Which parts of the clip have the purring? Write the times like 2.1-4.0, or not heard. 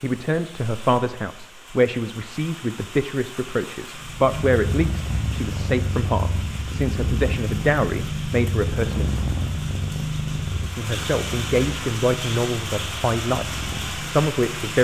3.9-14.7.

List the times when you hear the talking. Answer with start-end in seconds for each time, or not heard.
0.0-9.2, 10.6-13.4, 14.1-14.7.